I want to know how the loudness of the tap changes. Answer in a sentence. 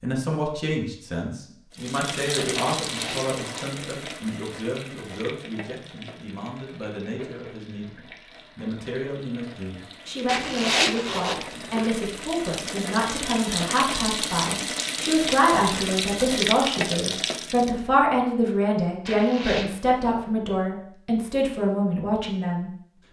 The loudness of the tap goes down, then up.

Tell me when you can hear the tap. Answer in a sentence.
The tap can be heard from 1.7 to 17.8 s.